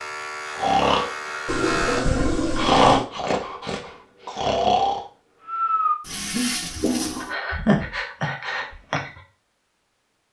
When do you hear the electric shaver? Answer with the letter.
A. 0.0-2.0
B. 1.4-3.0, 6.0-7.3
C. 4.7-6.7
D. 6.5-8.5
A.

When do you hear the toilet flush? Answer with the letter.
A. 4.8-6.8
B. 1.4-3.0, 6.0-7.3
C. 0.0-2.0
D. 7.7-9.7
B.